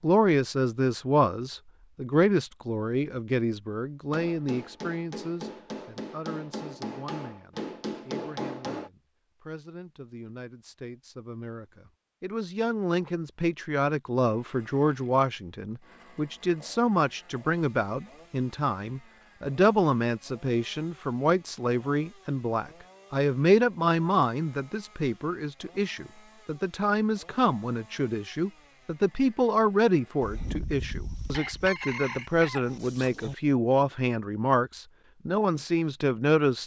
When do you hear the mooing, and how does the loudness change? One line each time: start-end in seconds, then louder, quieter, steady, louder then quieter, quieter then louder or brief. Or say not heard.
not heard.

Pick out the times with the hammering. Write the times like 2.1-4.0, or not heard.
4.1-8.9.